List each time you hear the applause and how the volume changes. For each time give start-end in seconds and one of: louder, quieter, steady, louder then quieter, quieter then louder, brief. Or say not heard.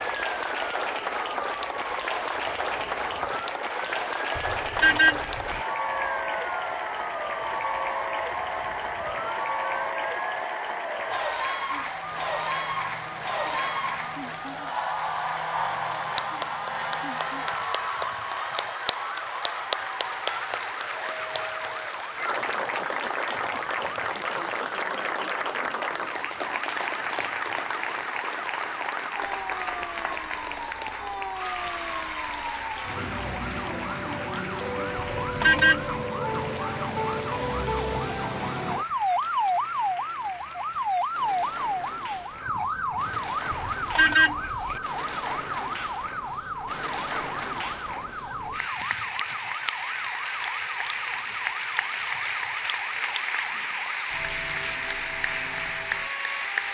0.0-56.6 quieter then louder.